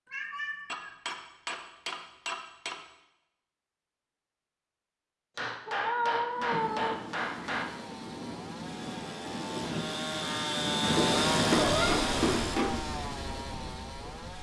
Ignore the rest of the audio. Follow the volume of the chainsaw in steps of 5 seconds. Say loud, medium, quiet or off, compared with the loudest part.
off, medium, loud.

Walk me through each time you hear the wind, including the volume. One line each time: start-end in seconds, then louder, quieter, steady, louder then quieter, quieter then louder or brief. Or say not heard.
6.3-14.3 louder then quieter.